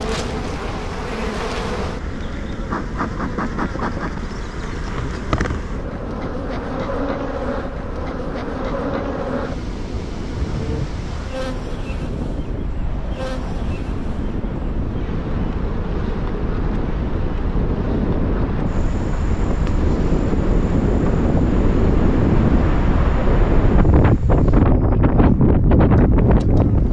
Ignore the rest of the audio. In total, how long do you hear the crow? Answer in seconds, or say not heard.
not heard.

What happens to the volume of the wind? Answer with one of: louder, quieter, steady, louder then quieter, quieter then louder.
louder.